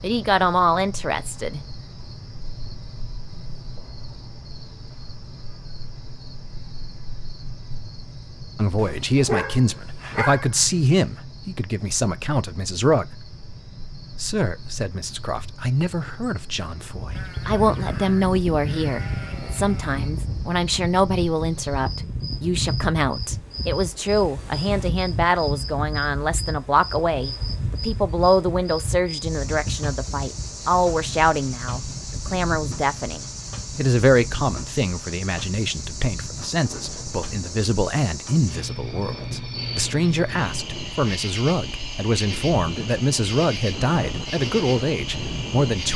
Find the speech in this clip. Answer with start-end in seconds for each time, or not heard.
0.0-1.6, 8.6-13.1, 14.2-45.9.